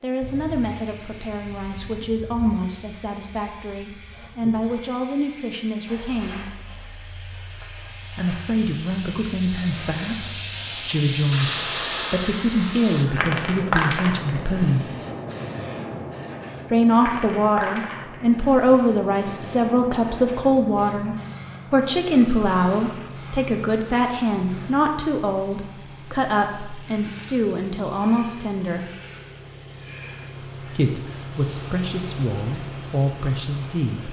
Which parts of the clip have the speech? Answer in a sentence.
The speech can be heard from 0.0 to 6.5 s, from 8.1 to 14.9 s, from 16.7 to 28.9 s and from 30.6 to 34.0 s.